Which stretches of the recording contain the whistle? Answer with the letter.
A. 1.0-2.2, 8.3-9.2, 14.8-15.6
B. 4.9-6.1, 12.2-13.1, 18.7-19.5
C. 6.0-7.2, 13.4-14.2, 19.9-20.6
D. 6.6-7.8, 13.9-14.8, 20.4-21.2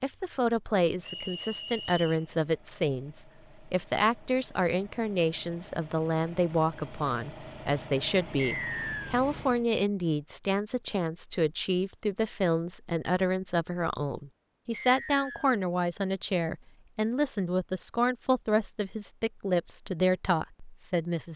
A.